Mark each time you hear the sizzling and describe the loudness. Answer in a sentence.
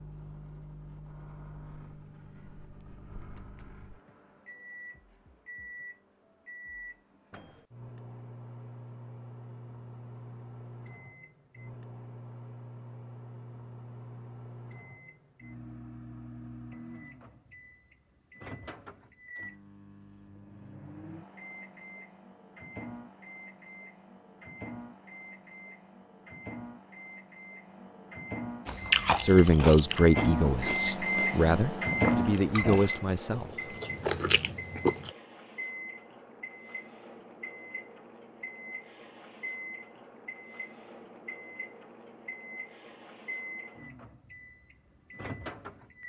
The sizzling can't be heard in this clip.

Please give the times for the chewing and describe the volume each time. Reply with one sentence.
The chewing can be heard from 28.6 to 35.1 s, getting quieter then louder.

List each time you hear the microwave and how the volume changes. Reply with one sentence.
You can hear the microwave from 0.0 to 46.0 s, getting louder then quieter.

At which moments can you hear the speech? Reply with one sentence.
You can hear the speech from 29.2 to 33.8 s.